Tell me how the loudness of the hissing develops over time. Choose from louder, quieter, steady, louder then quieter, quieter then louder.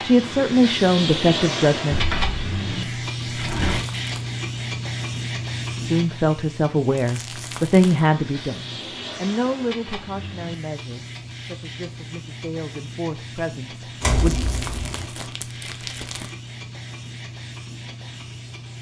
quieter.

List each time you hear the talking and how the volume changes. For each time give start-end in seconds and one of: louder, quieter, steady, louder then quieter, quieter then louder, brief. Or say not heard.
0.0-2.0 brief
5.8-14.3 quieter then louder.